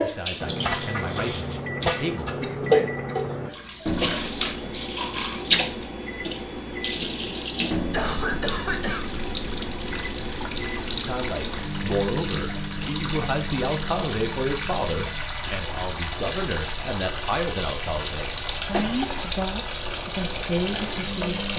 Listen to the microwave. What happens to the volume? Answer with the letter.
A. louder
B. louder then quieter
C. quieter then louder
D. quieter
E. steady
D.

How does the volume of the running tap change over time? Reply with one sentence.
The volume of the running tap stays about the same.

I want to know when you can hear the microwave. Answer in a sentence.
You can hear the microwave from 0.0 to 21.5 s.